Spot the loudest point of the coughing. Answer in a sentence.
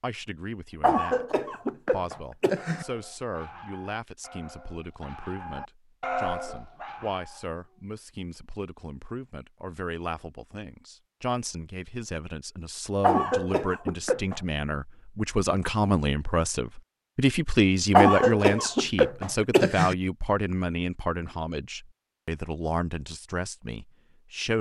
The volume of the coughing peaks at 18 seconds.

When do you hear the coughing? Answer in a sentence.
The coughing can be heard from 0.8 to 2.9 s, from 13.0 to 14.4 s and from 17.9 to 19.9 s.